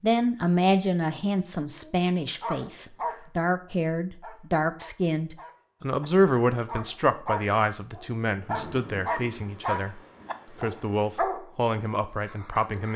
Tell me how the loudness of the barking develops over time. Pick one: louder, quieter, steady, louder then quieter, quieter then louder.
quieter then louder.